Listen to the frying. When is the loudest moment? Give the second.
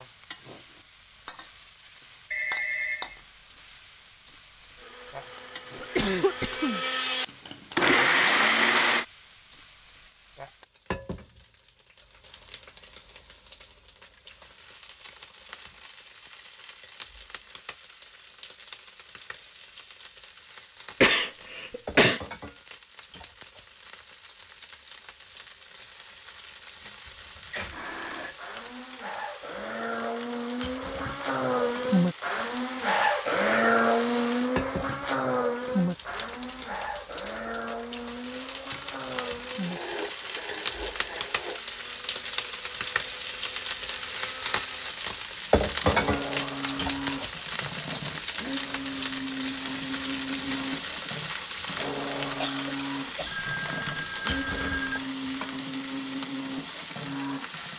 46 s.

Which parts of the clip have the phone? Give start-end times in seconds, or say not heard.
2.3-3.2, 27.1-28.4, 53.2-55.0.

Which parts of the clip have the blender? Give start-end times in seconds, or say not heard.
4.8-9.1, 27.7-57.7.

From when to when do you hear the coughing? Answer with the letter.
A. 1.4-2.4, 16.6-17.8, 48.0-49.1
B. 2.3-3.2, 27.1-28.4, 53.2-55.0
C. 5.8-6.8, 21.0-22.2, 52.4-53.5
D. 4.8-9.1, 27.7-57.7
C.